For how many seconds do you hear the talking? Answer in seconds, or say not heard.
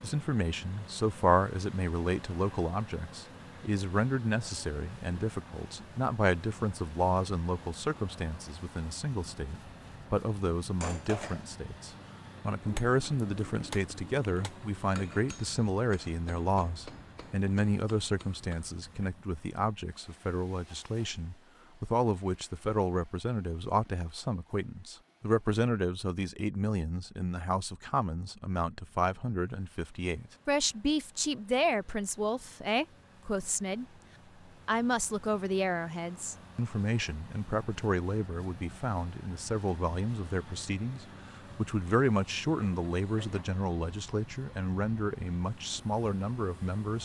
46 s.